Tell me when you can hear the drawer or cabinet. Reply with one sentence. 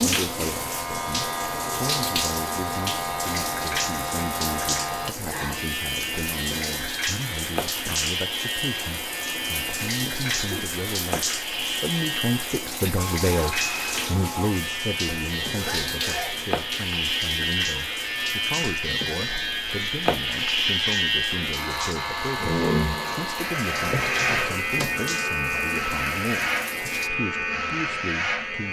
You can hear the drawer or cabinet from 23.8 to 25.1 s.